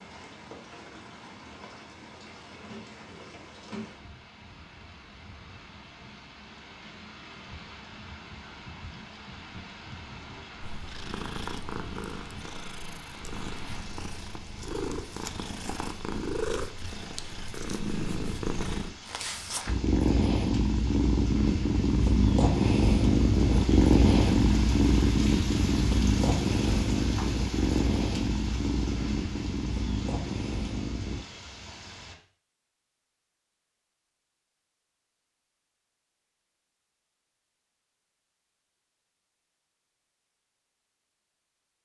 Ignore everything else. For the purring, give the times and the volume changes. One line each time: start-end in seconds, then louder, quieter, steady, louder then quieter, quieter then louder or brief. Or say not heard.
10.6-31.2 louder then quieter.